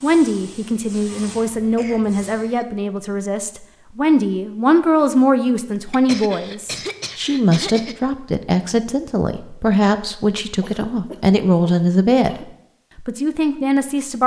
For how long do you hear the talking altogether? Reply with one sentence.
The talking can be heard for 14 seconds in total.